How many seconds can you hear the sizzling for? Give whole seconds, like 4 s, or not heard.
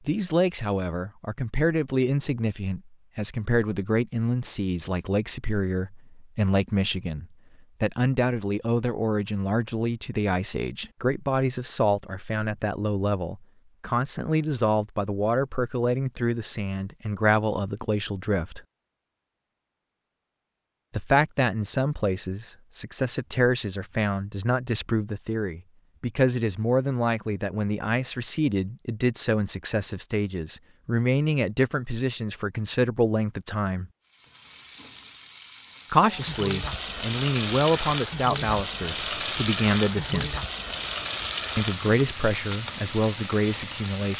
10 s.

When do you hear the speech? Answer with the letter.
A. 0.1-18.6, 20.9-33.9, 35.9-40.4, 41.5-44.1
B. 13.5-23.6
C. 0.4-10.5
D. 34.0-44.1
A.